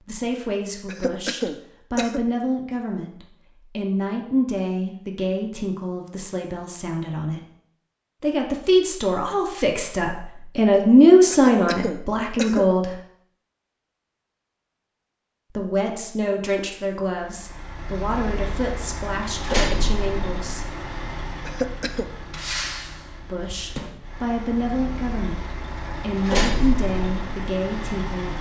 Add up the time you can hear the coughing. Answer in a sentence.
The coughing can be heard for 3 seconds in total.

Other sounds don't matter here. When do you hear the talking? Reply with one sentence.
You can hear the talking from 0.1 to 7.4 s, from 8.2 to 12.9 s, from 15.6 to 20.8 s and from 23.2 to 28.3 s.